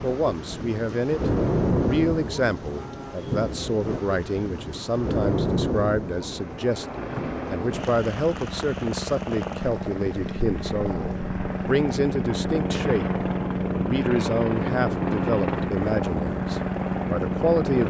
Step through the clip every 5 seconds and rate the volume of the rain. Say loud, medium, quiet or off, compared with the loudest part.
loud, loud, quiet, medium.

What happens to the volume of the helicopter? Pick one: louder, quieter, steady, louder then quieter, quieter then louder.
louder.